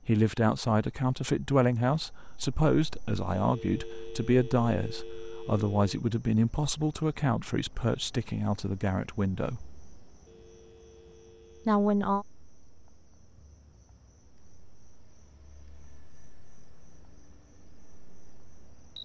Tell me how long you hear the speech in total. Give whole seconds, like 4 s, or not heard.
10 s.